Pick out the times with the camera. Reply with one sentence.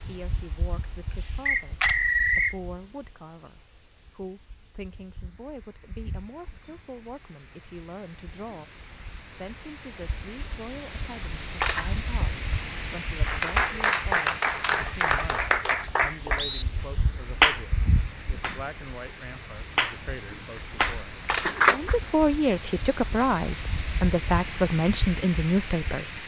You can hear the camera from 1.2 to 1.9 s, from 11.6 to 13.0 s and from 21.2 to 22.1 s.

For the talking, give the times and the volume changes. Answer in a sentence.
The talking can be heard from 0.0 to 26.2 s, getting louder.